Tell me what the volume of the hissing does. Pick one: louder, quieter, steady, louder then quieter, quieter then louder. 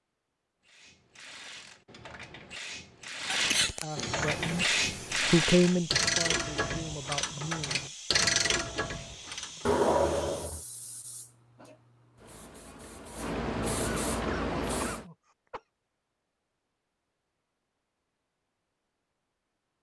quieter then louder.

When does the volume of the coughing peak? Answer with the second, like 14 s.
10 s.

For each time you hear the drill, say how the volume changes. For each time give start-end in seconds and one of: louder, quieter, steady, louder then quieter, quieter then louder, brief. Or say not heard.
not heard.